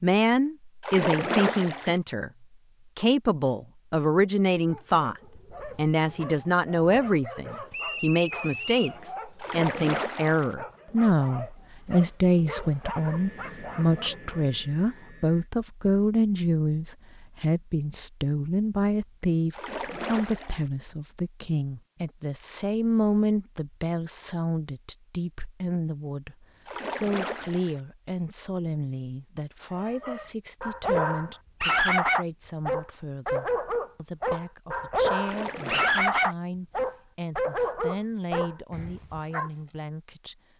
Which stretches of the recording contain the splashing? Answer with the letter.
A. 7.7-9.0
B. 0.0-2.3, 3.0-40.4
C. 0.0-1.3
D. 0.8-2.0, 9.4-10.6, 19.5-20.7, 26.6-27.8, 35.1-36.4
D.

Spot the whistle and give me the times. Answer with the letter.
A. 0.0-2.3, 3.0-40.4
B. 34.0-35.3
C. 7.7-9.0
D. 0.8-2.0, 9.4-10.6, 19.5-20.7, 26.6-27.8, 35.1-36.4
C.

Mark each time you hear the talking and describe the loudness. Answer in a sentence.
The talking can be heard briefly from 0.0 to 2.3 s; and from 3.0 to 40.4 s, getting quieter.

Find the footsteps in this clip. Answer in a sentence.
You can't hear the footsteps here.